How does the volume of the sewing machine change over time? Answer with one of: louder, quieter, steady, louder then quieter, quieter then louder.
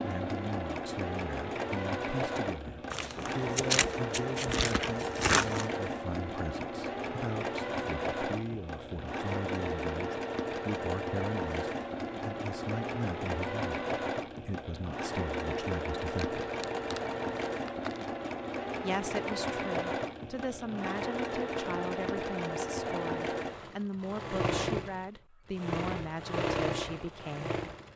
steady.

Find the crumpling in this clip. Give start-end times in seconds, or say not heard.
2.9-5.7, 16.1-18.1.